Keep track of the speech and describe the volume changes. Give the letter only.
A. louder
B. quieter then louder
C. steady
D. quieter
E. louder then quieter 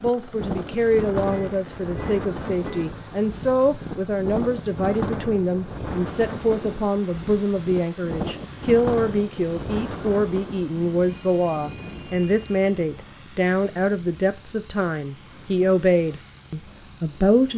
C.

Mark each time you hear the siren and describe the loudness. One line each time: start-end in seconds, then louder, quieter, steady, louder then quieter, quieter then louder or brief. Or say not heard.
not heard.